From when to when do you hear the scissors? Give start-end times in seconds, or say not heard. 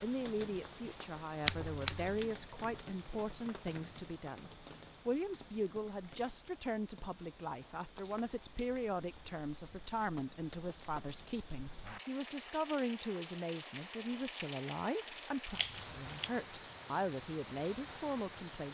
1.4-2.2, 15.5-16.3.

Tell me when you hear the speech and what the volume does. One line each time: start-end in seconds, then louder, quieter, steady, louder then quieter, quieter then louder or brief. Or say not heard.
0.0-18.7 steady.